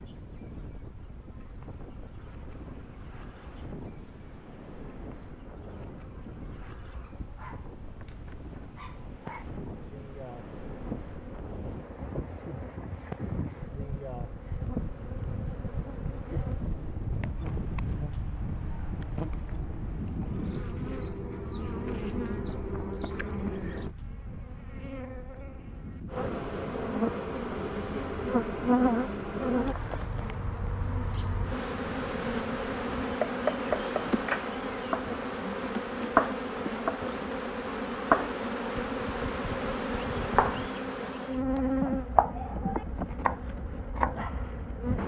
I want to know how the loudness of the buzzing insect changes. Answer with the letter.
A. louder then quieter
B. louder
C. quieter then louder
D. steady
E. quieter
B.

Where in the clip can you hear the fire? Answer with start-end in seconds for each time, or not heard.
not heard.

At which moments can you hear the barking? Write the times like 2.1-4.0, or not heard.
7.0-9.4.